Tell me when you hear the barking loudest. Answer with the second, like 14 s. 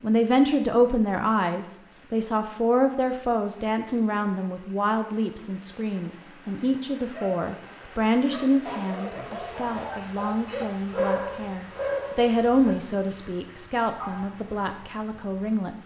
11 s.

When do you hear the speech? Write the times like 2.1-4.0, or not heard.
0.0-15.8.